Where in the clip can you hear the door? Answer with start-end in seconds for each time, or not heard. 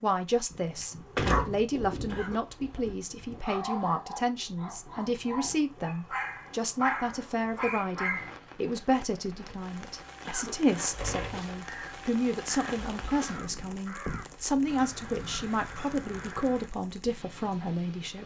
0.5-2.4, 10.8-11.4.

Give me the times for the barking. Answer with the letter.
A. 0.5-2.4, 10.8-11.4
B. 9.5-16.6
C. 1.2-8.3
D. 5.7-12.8
C.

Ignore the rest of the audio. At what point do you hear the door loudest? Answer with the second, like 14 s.
1 s.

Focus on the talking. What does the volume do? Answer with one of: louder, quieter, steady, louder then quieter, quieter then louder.
steady.